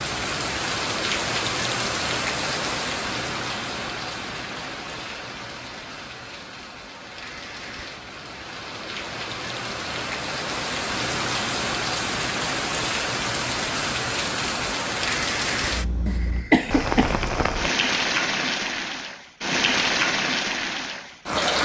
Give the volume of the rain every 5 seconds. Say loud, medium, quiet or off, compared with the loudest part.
loud, medium, loud, loud, loud.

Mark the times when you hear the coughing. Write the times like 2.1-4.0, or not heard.
16.1-17.2.